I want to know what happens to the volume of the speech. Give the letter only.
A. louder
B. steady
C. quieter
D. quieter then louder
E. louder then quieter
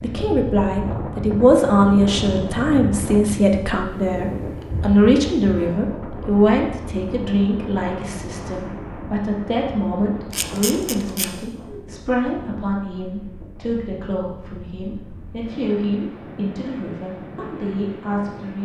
C.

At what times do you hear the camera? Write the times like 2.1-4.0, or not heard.
10.3-11.3.